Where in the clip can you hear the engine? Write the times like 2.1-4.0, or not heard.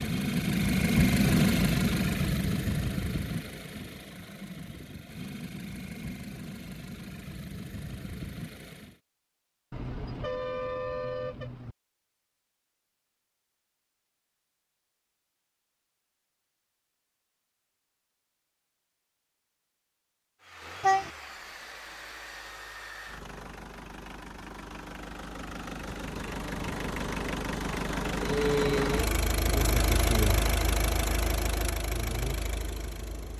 0.0-9.0, 20.4-33.3.